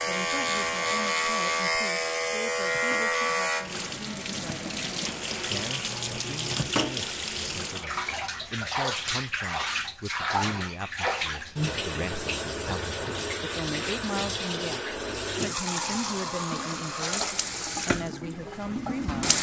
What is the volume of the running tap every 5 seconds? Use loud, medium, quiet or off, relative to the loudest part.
medium, loud, loud, loud.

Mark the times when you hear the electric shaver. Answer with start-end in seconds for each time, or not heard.
0.0-6.7.